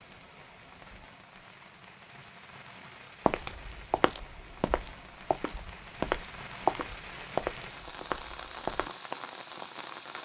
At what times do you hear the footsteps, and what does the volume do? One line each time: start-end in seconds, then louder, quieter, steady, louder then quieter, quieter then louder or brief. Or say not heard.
3.2-8.9 louder then quieter.